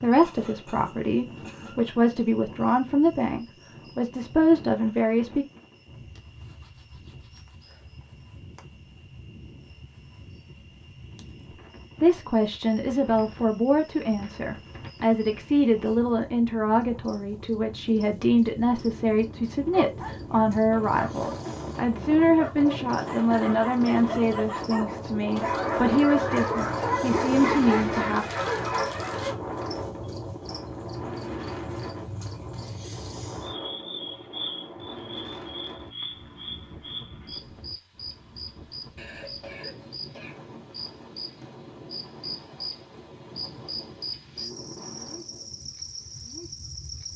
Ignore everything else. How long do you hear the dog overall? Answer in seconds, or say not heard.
10 s.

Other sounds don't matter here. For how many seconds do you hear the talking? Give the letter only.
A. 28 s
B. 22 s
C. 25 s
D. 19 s
B.